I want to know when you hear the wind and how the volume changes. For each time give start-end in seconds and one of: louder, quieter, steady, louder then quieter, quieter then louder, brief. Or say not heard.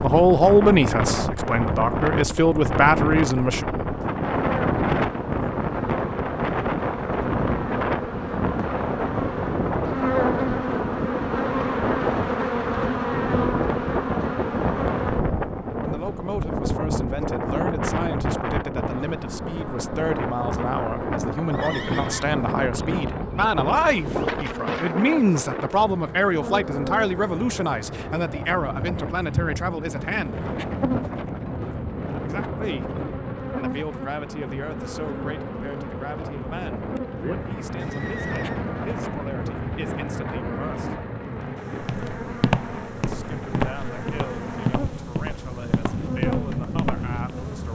0.0-47.7 quieter.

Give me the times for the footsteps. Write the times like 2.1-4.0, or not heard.
41.8-47.1.